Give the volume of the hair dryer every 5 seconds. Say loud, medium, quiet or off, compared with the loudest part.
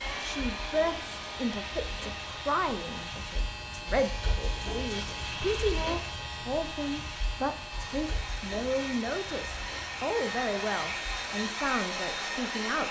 medium, medium, loud.